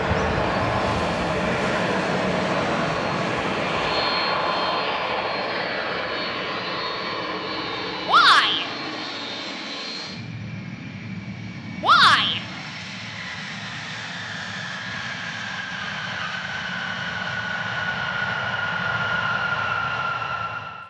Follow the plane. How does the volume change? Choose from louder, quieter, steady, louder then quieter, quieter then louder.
quieter then louder.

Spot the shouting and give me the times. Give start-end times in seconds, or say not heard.
8.1-8.7, 11.8-12.4.